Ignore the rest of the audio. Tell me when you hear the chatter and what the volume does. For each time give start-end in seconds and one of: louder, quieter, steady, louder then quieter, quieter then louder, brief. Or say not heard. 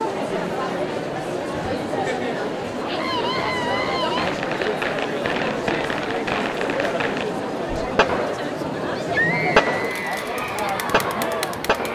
0.0-11.9 steady.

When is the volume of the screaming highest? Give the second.
9 s.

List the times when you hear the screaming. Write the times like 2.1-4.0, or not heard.
2.9-4.3, 8.9-10.2.